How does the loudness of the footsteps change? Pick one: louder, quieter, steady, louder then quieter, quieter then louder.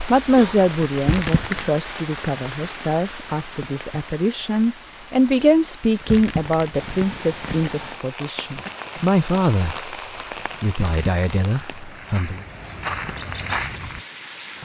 louder.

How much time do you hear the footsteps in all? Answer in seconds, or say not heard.
6 s.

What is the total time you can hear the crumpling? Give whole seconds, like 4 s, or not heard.
4 s.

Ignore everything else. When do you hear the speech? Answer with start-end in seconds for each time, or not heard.
0.1-9.9, 10.6-12.4.